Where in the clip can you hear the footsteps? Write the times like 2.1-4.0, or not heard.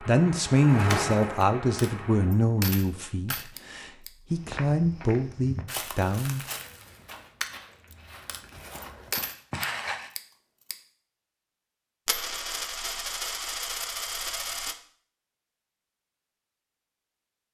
4.3-10.1.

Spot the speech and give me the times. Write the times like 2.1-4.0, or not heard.
0.0-6.4.